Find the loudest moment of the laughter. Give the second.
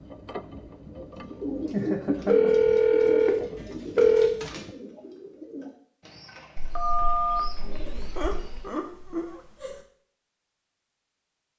2 s.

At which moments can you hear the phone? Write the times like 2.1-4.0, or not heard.
2.2-4.3, 6.5-8.6.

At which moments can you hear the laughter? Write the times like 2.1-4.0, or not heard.
1.7-2.5, 7.8-9.8.